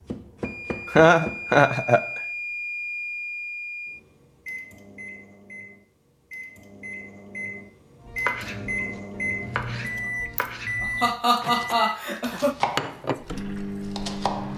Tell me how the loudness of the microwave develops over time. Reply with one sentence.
The volume of the microwave goes down, then up.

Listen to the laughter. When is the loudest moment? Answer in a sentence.
The volume of the laughter peaks at 1 second.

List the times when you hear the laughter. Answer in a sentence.
You can hear the laughter from 0.8 to 2.0 s and from 10.3 to 12.6 s.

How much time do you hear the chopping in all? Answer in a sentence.
You can hear the chopping for 8 seconds altogether.